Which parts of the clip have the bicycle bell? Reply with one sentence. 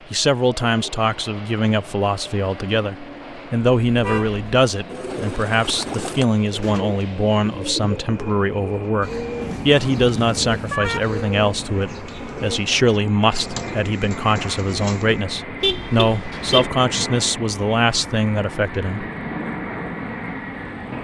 The bicycle bell can't be heard in this clip.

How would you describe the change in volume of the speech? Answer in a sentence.
The loudness of the speech stays about the same.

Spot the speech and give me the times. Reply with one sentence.
The speech can be heard from 0.1 to 19.1 s.